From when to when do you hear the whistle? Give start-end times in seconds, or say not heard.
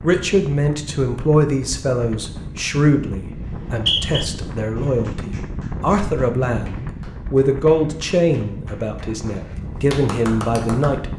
3.5-4.2.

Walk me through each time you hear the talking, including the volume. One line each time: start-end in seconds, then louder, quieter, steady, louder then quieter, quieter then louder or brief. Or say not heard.
0.0-11.1 steady.